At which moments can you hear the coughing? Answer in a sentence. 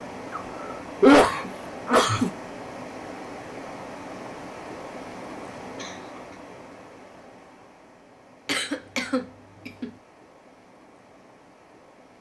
The coughing can be heard from 0.3 to 2.3 s, from 5.8 to 6.3 s and from 8.4 to 9.9 s.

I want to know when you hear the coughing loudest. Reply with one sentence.
The loudest moment of the coughing is at 1 second.